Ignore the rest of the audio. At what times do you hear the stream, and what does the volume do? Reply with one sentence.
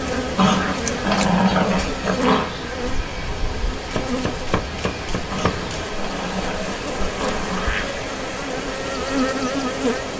The stream can be heard from 0.0 to 10.1 s, at a steady volume.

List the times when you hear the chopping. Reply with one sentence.
You can hear the chopping from 3.9 to 5.9 s.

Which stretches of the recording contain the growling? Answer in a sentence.
The growling can be heard from 0.3 to 2.5 s and from 5.3 to 8.0 s.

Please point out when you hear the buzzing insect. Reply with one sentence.
The buzzing insect can be heard from 0.0 to 10.1 s.